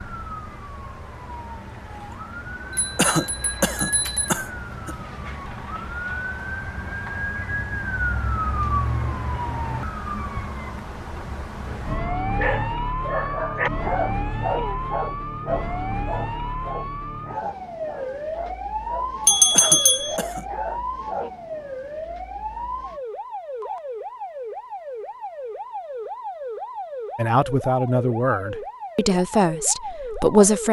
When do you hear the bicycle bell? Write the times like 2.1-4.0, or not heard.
2.7-4.3, 19.2-20.1.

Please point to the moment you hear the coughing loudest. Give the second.
3 s.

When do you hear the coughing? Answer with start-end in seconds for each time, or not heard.
3.0-5.0, 19.5-20.4.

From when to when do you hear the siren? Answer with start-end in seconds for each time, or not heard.
0.0-30.6.